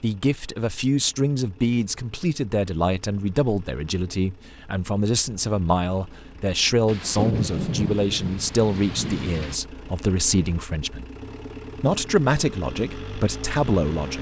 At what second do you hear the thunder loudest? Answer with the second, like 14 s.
7 s.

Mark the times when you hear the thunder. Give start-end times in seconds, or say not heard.
6.8-9.6.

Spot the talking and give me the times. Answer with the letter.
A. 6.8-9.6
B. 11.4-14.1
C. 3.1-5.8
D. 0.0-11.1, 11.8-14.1
D.